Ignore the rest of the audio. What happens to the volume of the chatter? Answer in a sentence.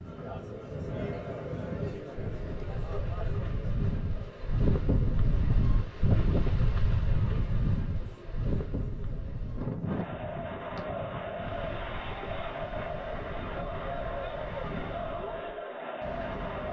The loudness of the chatter goes down, then up.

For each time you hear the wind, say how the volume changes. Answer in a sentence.
The wind can be heard from 0.0 to 16.6 s, getting louder then quieter.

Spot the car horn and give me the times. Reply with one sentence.
The car horn can't be heard in this clip.